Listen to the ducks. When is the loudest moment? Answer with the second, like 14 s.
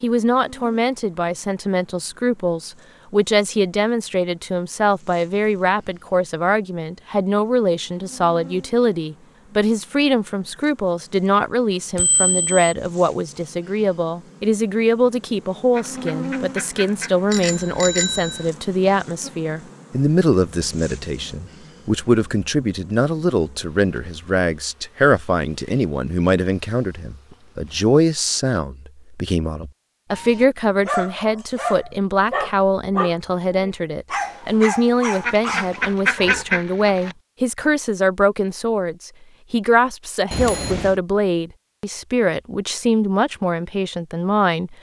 36 s.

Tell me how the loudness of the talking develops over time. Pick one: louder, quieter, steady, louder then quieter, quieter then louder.
steady.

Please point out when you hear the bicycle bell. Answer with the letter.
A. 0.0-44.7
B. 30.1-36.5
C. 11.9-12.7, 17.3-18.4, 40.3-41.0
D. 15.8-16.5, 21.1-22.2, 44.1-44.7
C.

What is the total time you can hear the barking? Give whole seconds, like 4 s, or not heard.
6 s.